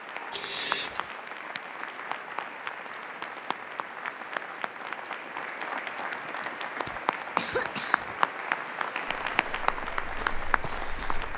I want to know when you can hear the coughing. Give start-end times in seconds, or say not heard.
0.3-1.1, 6.8-8.2.